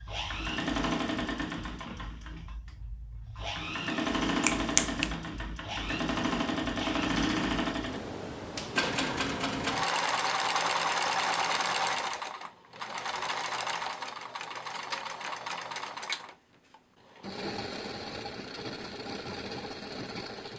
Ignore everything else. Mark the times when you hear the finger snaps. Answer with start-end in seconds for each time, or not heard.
4.4-5.1.